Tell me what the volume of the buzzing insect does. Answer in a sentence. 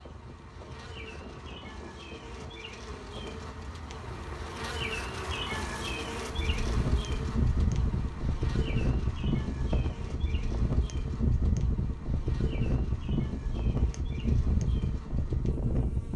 The volume of the buzzing insect goes up, then down.